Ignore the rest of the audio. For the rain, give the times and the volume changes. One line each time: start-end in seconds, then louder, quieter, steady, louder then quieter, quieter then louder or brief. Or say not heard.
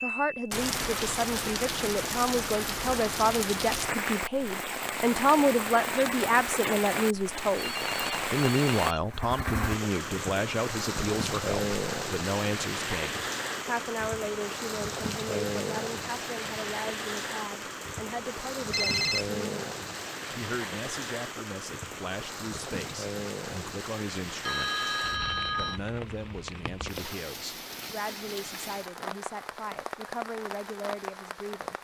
0.0-31.7 quieter.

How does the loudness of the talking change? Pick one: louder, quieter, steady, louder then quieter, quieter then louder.
quieter.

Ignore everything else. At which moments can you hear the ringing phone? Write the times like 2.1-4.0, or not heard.
7.5-9.0, 18.7-19.3, 24.4-25.8.